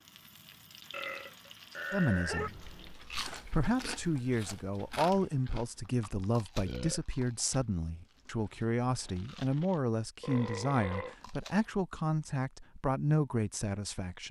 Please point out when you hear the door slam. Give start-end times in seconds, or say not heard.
not heard.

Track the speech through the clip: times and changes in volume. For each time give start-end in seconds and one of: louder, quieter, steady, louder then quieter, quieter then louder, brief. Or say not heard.
1.9-14.2 steady.